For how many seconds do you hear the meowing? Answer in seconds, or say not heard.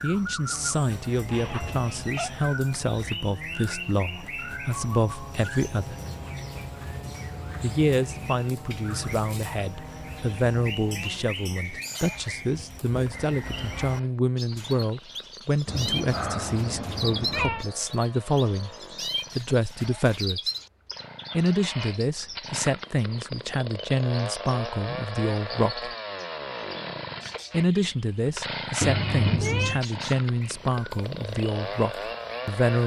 4 s.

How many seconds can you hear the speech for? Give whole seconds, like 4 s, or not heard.
28 s.